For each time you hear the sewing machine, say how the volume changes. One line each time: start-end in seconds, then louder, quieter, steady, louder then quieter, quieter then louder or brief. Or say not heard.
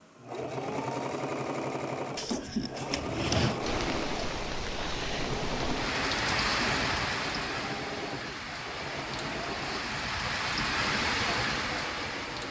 0.0-12.4 quieter.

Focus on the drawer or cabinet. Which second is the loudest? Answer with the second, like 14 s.
3 s.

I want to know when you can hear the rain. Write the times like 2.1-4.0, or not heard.
3.6-12.4.